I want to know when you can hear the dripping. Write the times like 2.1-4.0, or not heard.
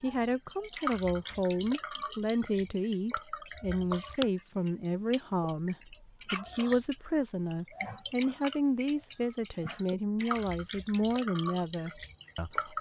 0.0-12.7.